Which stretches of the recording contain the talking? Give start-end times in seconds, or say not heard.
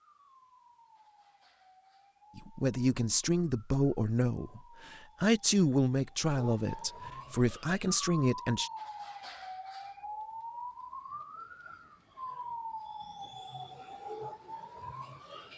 2.4-8.7.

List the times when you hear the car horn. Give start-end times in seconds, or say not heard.
not heard.